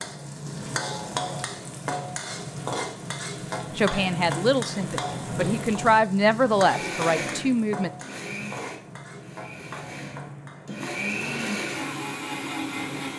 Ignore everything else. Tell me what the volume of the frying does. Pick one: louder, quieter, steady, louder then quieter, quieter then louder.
quieter.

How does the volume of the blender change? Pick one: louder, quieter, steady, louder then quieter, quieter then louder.
quieter then louder.